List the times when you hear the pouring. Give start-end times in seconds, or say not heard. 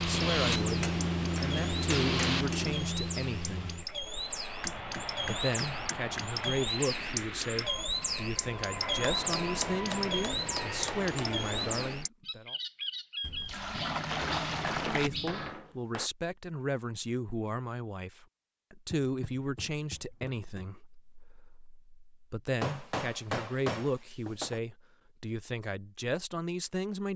13.2-15.1.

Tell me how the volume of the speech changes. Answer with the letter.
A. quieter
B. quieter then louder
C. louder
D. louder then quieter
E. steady
E.